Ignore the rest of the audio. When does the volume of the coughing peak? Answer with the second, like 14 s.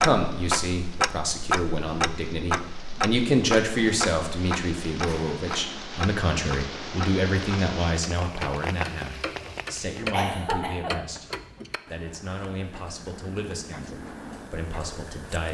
10 s.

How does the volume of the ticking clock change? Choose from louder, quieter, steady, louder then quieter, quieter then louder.
quieter.